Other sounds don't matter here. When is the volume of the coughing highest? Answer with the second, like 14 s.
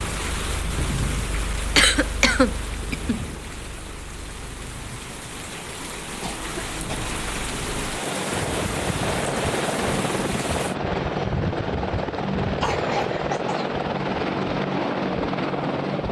2 s.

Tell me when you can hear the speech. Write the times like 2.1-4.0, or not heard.
not heard.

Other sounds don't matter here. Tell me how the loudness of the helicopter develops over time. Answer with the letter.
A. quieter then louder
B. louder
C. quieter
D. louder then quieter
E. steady
A.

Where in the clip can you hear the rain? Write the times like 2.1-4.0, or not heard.
0.0-10.8.